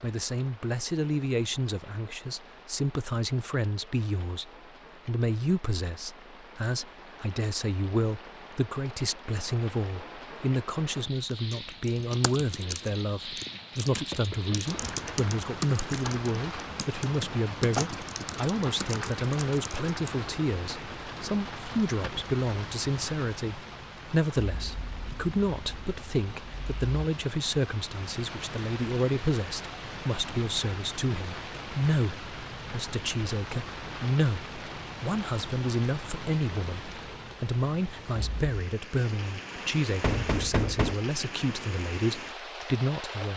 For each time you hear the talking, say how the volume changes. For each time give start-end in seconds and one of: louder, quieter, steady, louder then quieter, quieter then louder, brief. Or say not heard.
0.0-43.3 steady.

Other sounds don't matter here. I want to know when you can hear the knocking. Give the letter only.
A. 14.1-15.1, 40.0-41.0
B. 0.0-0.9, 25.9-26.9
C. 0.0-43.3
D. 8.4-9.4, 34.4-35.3
A.